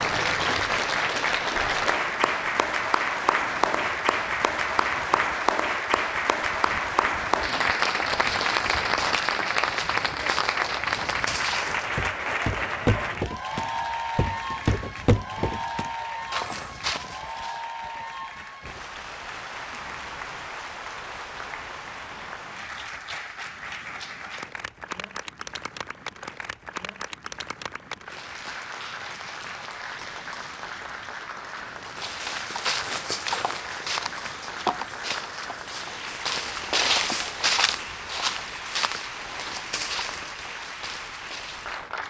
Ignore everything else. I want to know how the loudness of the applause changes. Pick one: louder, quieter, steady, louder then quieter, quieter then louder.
quieter.